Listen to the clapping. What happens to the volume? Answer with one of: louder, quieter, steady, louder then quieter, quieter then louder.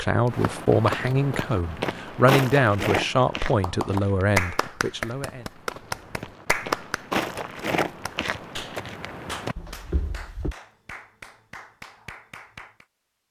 quieter.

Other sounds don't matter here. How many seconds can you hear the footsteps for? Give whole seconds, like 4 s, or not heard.
10 s.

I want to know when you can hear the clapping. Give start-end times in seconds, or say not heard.
3.5-12.8.